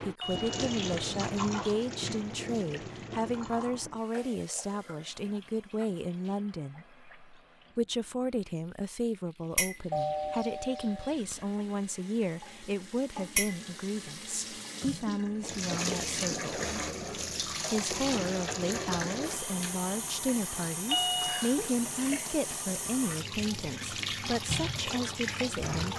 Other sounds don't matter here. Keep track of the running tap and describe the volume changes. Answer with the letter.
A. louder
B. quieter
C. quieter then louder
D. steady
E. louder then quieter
C.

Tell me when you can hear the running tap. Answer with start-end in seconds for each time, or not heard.
0.0-25.9.